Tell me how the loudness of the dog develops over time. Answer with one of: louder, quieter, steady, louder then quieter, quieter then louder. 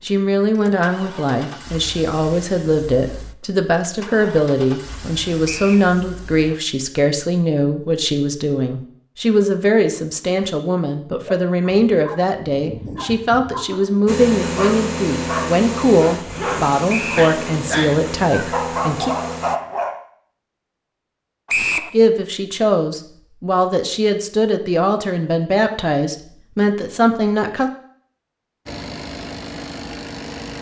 louder.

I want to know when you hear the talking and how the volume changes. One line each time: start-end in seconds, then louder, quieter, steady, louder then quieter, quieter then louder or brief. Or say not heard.
0.0-19.1 steady
21.9-27.7 steady.